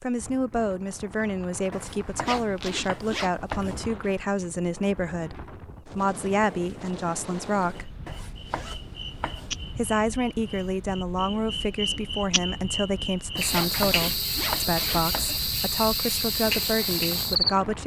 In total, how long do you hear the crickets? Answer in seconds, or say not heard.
10 s.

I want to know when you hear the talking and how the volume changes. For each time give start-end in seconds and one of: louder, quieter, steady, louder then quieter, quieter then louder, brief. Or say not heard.
0.0-8.0 steady
9.7-17.8 steady.